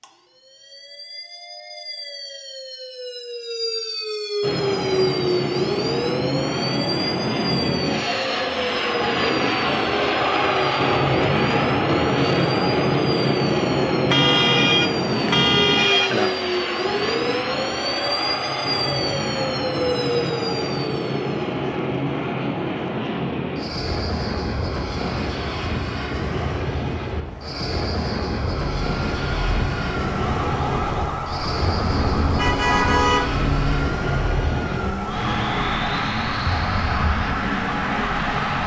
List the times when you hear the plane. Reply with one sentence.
The plane can be heard from 4.4 to 38.6 s.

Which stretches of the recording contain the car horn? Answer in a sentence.
The car horn can be heard from 14.1 to 16.4 s and from 32.1 to 33.9 s.